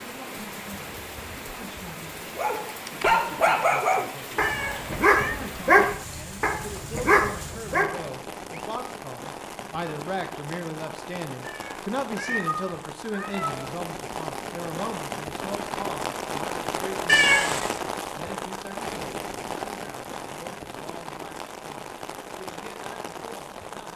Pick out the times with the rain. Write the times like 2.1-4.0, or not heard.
0.0-23.9.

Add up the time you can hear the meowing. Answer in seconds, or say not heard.
4 s.